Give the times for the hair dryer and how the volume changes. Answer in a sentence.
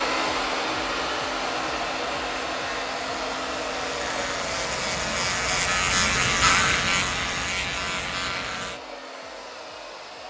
You can hear the hair dryer from 0.0 to 10.2 s, getting quieter.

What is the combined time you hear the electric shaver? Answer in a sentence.
You can hear the electric shaver for 9 seconds altogether.